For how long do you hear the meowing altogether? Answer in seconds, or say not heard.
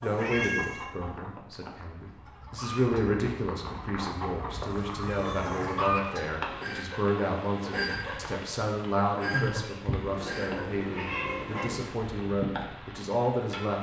4 s.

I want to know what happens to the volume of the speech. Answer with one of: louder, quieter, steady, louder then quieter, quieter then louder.
steady.